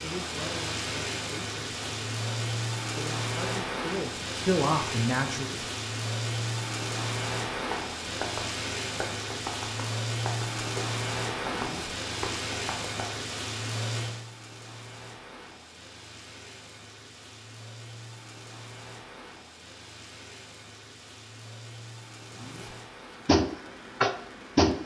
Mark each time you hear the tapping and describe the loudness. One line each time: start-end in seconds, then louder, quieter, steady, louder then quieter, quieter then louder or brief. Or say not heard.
7.5-13.2 steady
23.2-24.8 brief.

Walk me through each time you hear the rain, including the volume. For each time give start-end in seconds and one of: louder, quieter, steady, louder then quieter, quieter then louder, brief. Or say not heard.
0.0-24.8 quieter.